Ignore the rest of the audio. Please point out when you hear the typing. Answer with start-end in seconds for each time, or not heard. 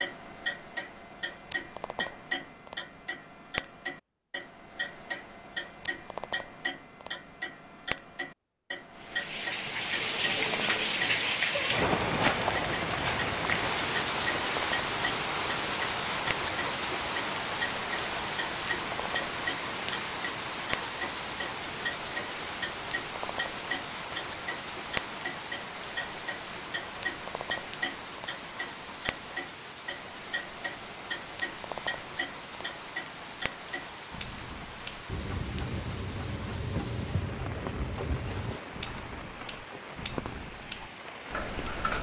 not heard.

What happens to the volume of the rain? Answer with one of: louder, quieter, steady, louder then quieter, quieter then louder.
quieter.